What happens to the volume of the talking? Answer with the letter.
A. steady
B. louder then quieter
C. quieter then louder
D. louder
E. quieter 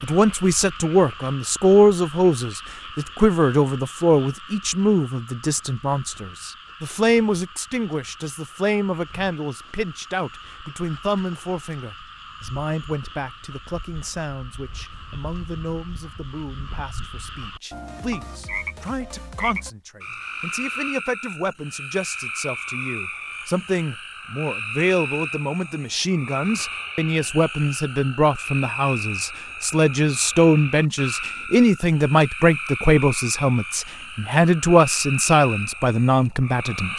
C.